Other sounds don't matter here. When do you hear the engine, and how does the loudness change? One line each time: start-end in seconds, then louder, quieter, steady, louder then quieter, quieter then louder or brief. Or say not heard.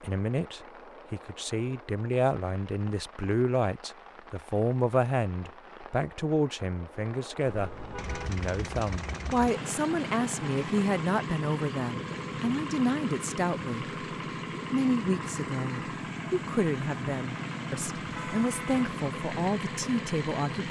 8.0-20.6 steady.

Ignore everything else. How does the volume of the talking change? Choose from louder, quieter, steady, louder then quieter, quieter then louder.
steady.